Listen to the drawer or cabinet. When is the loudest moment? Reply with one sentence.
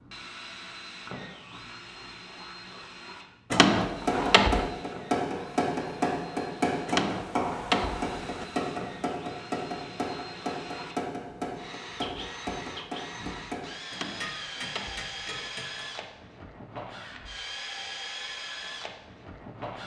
The volume of the drawer or cabinet peaks at 4 seconds.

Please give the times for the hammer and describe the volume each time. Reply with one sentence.
You can hear the hammer from 3.8 to 15.8 s, getting quieter.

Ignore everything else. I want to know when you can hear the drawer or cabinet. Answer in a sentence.
You can hear the drawer or cabinet from 3.5 to 4.7 s, from 6.8 to 8.4 s and from 13.9 to 15.5 s.